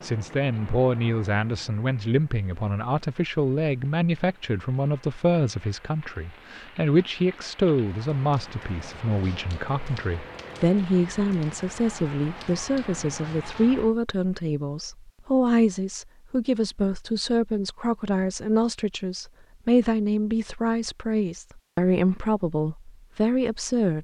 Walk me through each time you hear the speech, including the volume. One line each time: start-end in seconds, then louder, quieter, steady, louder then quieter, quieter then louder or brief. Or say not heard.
0.0-23.9 steady.